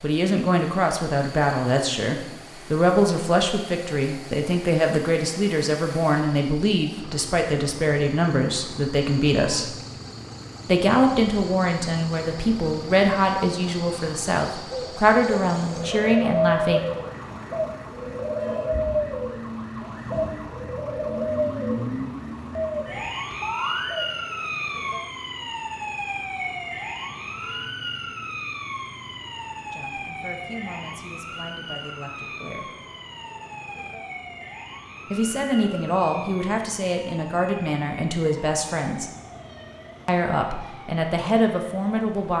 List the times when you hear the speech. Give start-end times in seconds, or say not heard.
0.0-9.8, 10.7-16.9, 29.7-32.7, 35.1-39.1, 40.0-42.3.